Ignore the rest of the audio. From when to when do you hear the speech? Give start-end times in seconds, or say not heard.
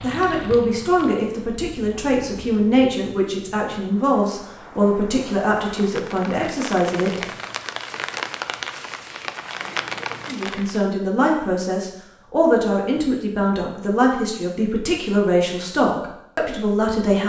0.0-7.2, 10.2-17.2.